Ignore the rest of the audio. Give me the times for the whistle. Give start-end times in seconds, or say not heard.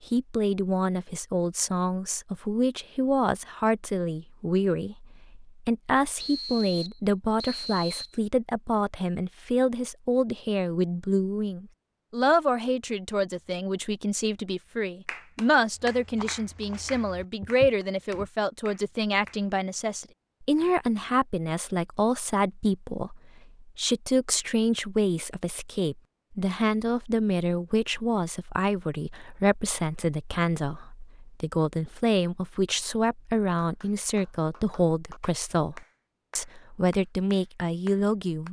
6.2-8.2.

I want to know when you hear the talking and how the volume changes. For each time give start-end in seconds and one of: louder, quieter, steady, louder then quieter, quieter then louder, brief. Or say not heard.
0.1-38.4 steady.